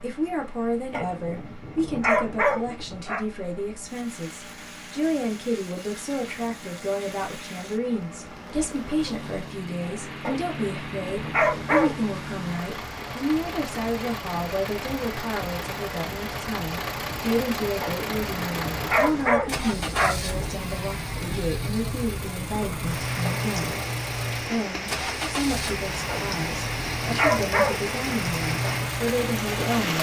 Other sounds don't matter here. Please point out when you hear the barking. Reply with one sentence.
The barking can be heard from 0.9 to 3.2 s, from 10.2 to 12.1 s, from 17.8 to 20.6 s and from 26.1 to 27.9 s.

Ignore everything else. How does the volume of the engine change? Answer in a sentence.
The loudness of the engine goes up.